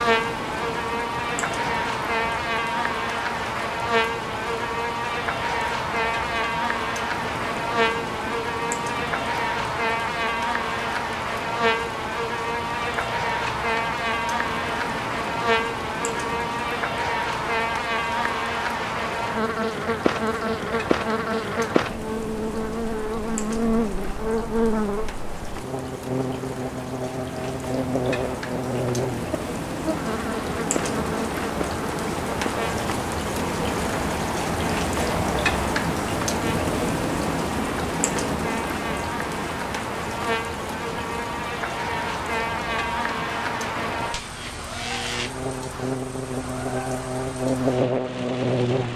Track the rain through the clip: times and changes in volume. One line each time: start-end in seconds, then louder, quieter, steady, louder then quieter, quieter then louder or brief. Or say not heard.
0.0-48.9 louder then quieter.